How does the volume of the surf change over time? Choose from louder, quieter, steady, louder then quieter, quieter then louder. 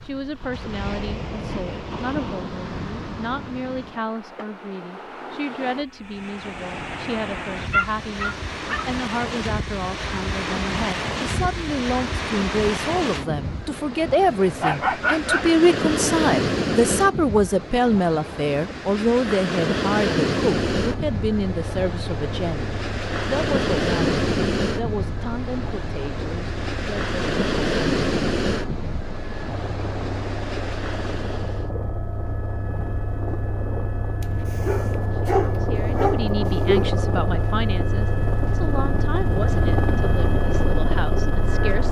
louder.